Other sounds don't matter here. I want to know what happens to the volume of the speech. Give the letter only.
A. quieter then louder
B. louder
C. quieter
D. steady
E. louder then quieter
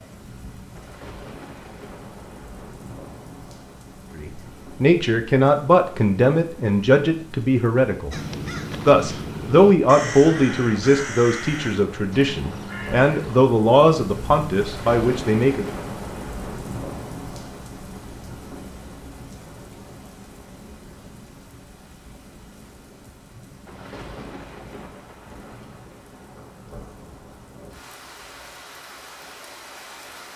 D.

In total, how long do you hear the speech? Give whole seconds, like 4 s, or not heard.
11 s.